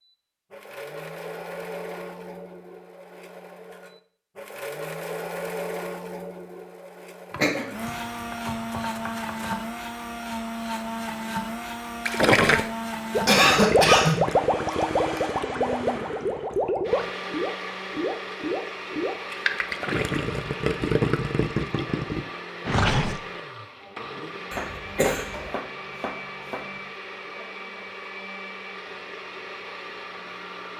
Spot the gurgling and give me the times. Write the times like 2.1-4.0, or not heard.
12.1-23.2.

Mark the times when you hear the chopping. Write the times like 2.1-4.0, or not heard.
7.3-9.6, 24.5-26.9.